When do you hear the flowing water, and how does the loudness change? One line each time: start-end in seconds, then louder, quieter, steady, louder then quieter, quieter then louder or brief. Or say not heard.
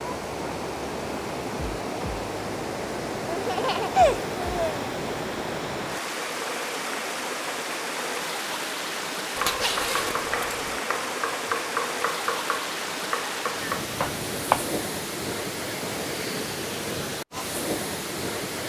0.0-18.6 steady.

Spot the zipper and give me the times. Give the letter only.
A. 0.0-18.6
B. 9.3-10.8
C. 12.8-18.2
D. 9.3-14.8
B.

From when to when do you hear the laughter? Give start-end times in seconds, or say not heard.
3.2-4.8.